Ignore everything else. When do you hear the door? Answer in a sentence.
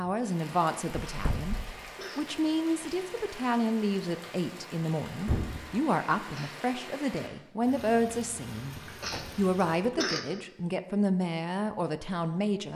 The door can be heard from 1.1 to 1.7 s, from 5.2 to 5.7 s and from 8.8 to 10.2 s.